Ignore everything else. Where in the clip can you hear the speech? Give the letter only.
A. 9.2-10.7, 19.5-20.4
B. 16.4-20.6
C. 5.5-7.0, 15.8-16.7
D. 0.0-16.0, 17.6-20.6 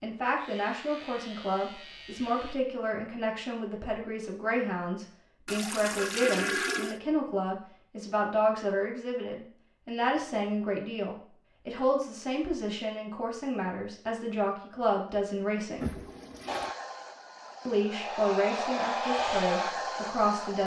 D.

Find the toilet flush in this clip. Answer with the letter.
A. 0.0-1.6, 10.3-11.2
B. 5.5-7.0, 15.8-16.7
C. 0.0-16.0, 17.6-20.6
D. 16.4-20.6
B.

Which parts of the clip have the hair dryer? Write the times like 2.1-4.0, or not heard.
16.4-20.6.